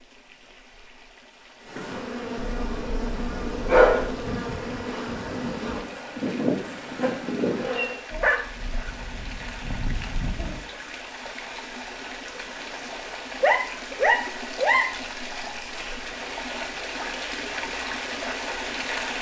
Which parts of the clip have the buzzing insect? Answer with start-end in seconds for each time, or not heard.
1.6-8.0.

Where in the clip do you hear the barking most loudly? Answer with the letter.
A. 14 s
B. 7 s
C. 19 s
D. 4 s
D.